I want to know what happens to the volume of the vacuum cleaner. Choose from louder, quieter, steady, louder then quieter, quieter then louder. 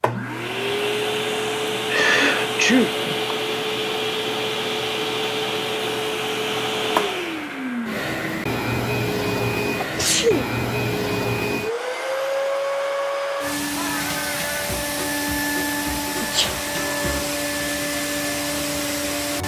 steady.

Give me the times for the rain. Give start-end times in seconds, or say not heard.
not heard.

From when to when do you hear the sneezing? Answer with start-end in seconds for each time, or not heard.
1.9-3.4, 9.8-10.5, 16.2-16.6.